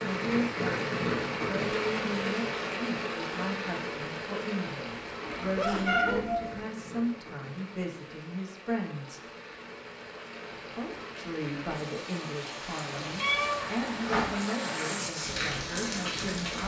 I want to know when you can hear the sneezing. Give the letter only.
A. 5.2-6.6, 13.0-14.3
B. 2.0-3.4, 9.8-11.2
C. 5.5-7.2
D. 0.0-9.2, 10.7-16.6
C.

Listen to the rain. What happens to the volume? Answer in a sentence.
The loudness of the rain goes down, then up.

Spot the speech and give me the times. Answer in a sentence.
You can hear the speech from 0.0 to 9.2 s and from 10.7 to 16.6 s.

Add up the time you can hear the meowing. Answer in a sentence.
The meowing can be heard for 3 seconds in total.